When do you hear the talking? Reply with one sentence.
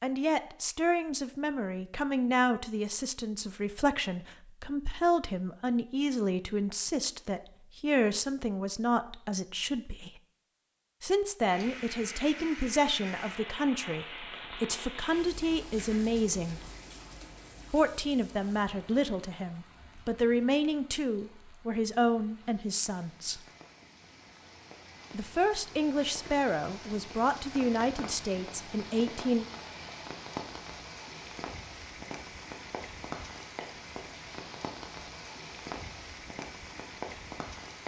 You can hear the talking from 0.0 to 10.2 s, from 11.0 to 16.6 s, from 17.7 to 23.4 s and from 25.1 to 29.4 s.